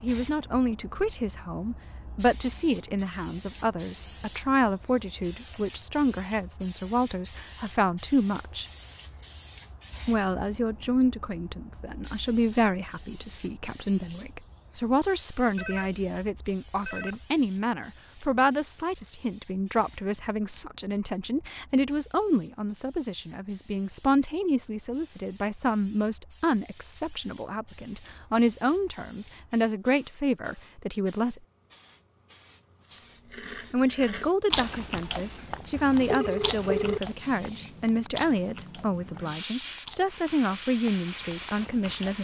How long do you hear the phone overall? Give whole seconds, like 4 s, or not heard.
3 s.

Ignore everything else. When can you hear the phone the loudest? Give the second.
37 s.